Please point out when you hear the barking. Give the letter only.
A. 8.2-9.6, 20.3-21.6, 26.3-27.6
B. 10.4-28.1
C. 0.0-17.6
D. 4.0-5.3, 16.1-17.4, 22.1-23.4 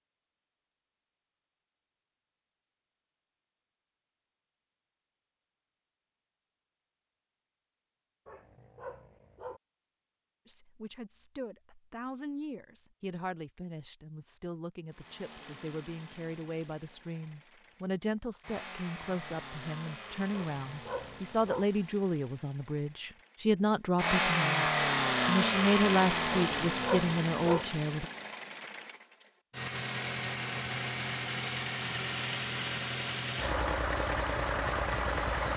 A.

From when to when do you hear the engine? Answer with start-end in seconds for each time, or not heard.
14.9-35.5.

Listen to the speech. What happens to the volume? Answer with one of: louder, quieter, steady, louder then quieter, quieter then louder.
louder.